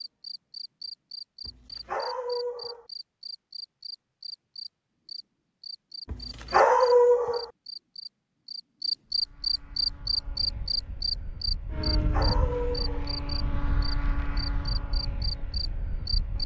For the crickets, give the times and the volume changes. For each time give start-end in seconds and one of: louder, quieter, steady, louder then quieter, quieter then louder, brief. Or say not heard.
0.0-16.4 louder then quieter.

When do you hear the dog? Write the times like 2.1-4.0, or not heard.
1.4-2.9, 6.0-7.5, 11.9-13.1.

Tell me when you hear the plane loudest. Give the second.
12 s.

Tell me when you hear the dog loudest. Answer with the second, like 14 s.
7 s.